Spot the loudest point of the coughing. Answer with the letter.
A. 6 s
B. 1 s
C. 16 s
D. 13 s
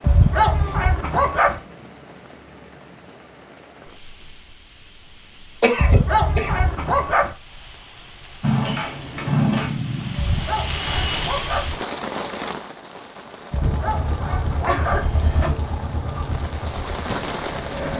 A.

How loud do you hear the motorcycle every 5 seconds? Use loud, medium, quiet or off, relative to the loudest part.
off, loud, medium, medium.